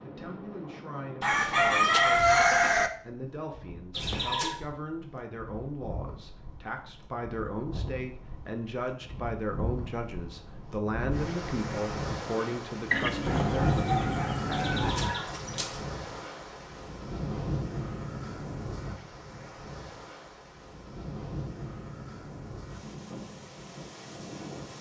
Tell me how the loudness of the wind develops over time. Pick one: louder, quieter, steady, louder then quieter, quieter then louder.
louder then quieter.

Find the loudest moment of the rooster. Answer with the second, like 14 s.
2 s.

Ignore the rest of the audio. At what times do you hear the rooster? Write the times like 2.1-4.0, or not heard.
1.2-2.9, 12.9-14.9.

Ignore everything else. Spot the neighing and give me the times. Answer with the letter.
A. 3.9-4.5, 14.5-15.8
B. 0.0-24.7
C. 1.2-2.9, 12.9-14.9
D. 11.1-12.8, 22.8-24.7
A.